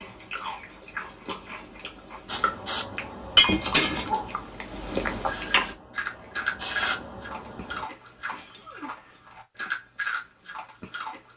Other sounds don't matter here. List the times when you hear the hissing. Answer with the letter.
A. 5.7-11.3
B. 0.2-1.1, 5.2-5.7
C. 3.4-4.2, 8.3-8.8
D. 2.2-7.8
D.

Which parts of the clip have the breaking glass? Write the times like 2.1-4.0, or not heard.
3.4-4.2, 8.3-8.8.